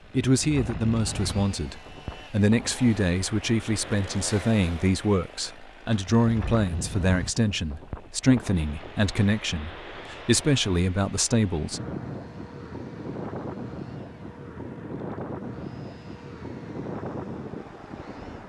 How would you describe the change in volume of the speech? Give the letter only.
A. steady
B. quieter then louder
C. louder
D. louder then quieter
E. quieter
A.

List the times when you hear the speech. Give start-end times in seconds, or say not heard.
0.1-11.8.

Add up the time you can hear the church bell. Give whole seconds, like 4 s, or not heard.
not heard.